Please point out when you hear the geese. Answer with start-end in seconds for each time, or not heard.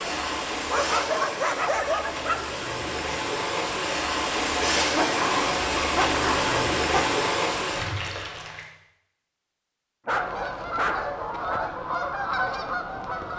10.1-13.3.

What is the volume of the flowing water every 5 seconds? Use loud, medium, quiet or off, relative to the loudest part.
loud, loud, off.